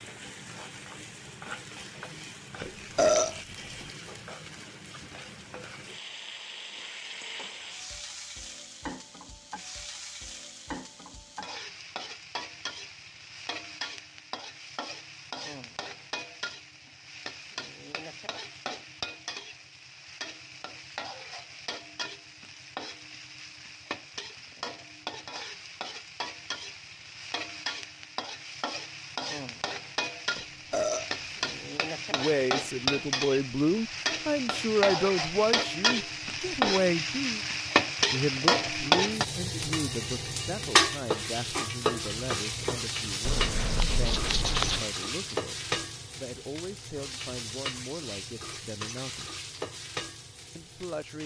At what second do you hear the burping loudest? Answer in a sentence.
The loudest moment of the burping is at 3 seconds.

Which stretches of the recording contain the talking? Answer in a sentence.
The talking can be heard from 32.1 to 37.4 s, from 38.1 to 49.4 s and from 50.5 to 51.2 s.